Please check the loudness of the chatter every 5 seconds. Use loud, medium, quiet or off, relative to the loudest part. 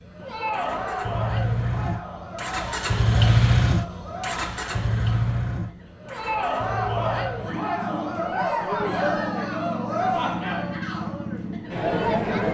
medium, loud, loud.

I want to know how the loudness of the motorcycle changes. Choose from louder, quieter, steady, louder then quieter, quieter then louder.
louder then quieter.